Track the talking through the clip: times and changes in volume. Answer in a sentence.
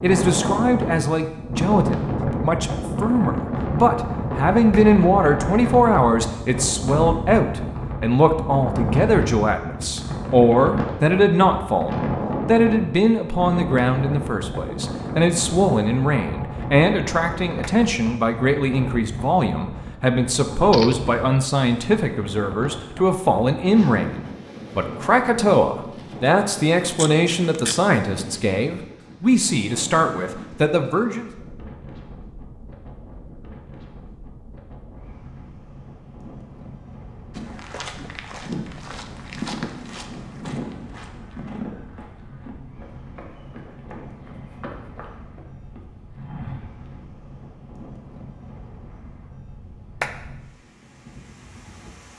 You can hear the talking from 0.0 to 31.3 s, at a steady volume.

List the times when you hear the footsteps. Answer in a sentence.
You can hear the footsteps from 37.4 to 47.0 s.